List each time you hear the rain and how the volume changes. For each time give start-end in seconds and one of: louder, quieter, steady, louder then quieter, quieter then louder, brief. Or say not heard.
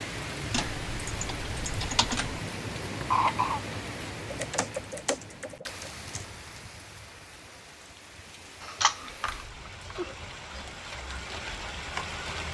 0.0-12.4 quieter then louder.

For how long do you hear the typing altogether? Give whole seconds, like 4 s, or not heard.
6 s.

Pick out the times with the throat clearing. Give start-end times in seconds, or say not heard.
2.8-3.6.